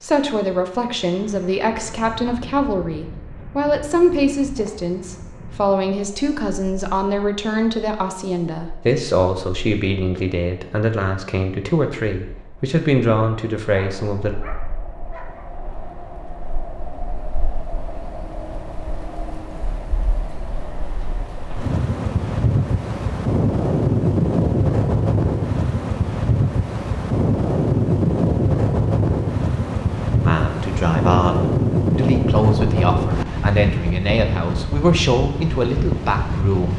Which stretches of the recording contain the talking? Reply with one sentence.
The talking can be heard from 0.0 to 14.3 s and from 30.1 to 36.7 s.